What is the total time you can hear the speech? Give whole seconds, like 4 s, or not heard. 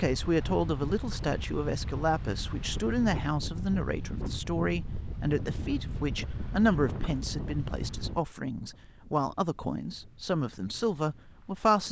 12 s.